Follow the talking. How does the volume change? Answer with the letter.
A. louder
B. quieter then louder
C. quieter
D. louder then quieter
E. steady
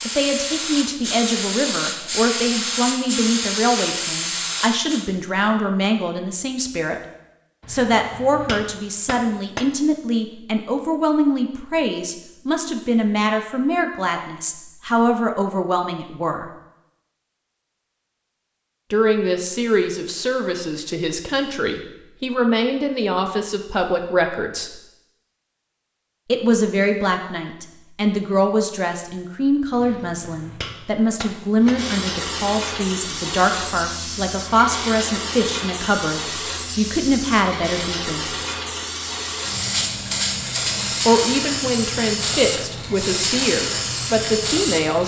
E.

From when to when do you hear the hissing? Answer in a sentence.
The hissing can be heard from 0.0 to 5.0 s and from 31.6 to 45.0 s.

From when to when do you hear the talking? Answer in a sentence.
The talking can be heard from 0.1 to 7.0 s, from 7.7 to 16.4 s, from 18.9 to 24.8 s, from 26.2 to 38.3 s and from 41.0 to 45.0 s.